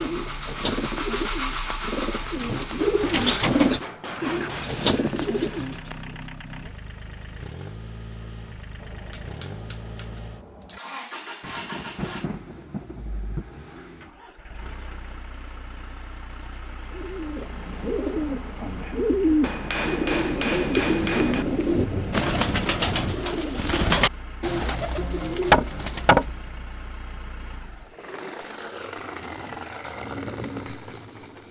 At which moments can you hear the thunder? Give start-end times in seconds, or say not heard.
11.4-13.4, 20.2-23.2.